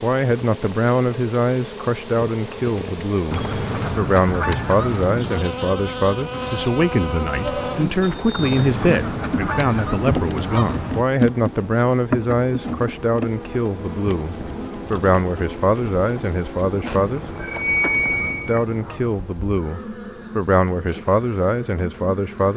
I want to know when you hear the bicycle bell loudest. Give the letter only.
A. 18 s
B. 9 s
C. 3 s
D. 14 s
A.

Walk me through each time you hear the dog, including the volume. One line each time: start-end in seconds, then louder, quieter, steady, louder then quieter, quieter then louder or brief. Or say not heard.
not heard.